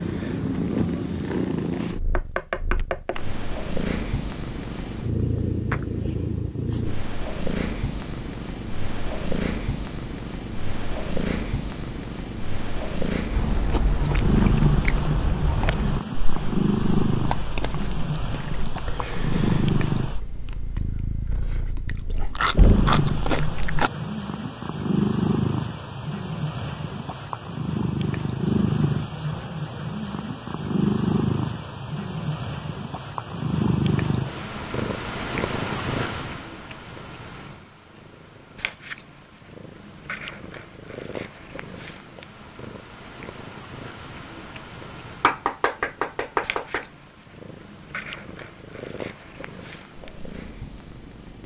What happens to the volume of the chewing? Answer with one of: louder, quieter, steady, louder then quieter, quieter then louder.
quieter then louder.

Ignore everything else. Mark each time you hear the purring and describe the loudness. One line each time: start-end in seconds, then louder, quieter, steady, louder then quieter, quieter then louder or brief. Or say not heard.
0.0-51.4 quieter.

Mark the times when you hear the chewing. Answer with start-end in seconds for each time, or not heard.
13.3-23.9.